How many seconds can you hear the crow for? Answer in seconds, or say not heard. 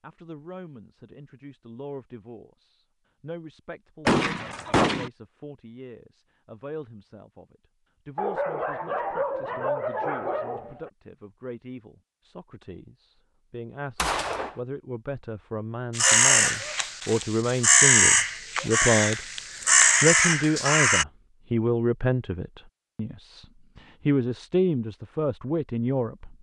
5 s.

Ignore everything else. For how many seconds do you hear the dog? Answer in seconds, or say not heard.
3 s.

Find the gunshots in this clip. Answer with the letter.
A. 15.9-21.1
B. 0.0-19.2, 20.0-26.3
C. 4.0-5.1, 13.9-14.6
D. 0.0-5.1
C.